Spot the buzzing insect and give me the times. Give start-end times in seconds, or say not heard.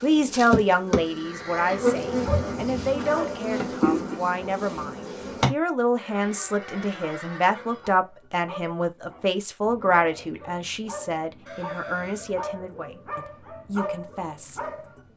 0.0-5.5.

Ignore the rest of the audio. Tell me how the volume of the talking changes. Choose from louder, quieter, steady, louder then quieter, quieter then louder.
quieter.